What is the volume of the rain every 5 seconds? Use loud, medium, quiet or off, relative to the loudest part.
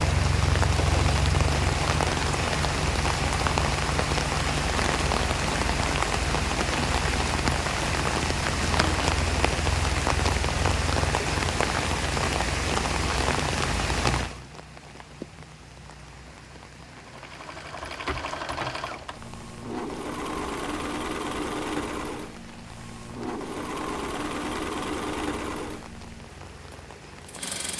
loud, loud, loud, quiet, quiet, quiet.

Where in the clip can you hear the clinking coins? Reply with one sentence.
You can hear the clinking coins from 17.9 to 18.9 s.